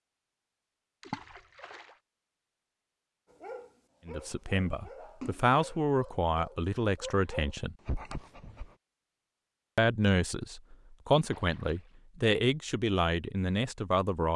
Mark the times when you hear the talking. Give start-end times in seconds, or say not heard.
4.0-7.8, 9.8-14.3.